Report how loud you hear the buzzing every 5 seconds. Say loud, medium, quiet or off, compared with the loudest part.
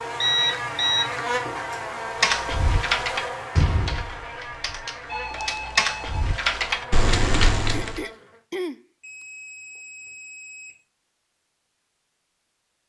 loud, medium, off.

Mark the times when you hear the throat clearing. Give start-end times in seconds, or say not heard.
7.7-8.8.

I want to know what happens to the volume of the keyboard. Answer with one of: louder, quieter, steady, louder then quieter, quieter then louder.
quieter then louder.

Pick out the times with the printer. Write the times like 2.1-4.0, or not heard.
not heard.